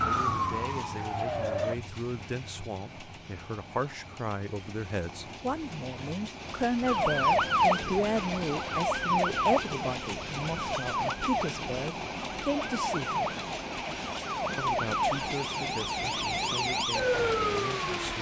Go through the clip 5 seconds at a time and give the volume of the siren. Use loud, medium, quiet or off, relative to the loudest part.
loud, loud, medium, loud.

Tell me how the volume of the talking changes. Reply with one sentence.
The volume of the talking goes up, then down.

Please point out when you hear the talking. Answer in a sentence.
The talking can be heard from 0.0 to 13.2 s and from 14.6 to 18.1 s.